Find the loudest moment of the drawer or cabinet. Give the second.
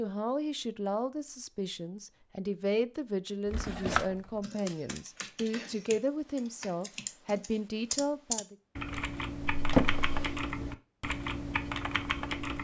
10 s.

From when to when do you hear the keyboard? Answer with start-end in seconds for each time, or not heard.
4.4-12.5.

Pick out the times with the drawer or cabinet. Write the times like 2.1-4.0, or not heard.
3.5-4.2, 9.5-10.4.